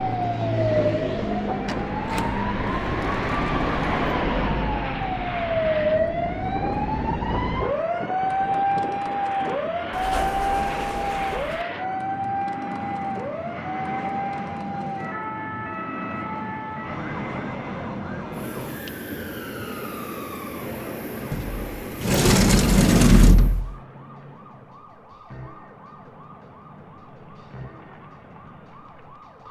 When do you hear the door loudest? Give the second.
23 s.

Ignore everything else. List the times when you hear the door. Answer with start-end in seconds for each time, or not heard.
1.6-4.0, 9.9-11.7, 21.3-23.8.